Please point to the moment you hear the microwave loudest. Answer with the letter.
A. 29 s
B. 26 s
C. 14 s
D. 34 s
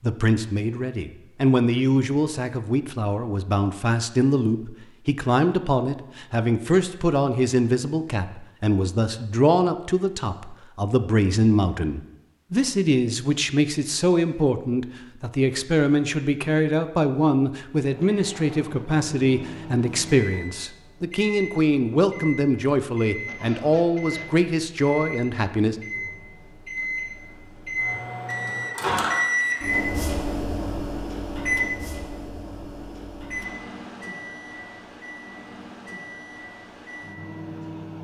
A.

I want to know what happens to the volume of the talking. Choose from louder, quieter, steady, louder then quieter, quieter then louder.
steady.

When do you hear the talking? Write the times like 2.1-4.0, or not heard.
0.0-25.8.